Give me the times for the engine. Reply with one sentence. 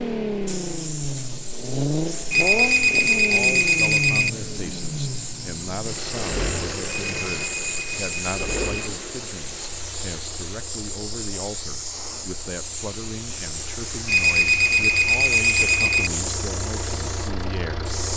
The engine can be heard from 0.0 to 18.1 s.